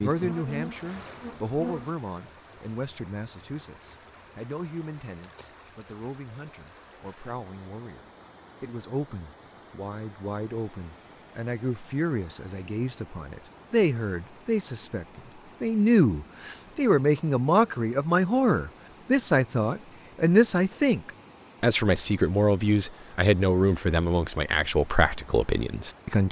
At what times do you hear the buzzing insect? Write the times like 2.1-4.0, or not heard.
0.0-1.9.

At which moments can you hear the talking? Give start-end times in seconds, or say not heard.
0.0-26.2.